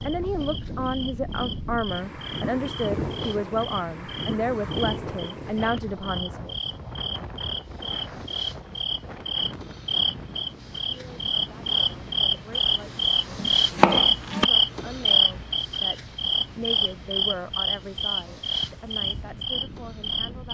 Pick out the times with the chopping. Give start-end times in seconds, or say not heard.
12.5-14.5.